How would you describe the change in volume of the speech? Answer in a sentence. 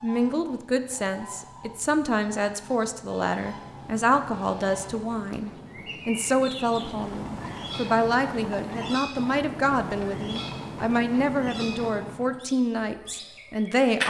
The loudness of the speech stays about the same.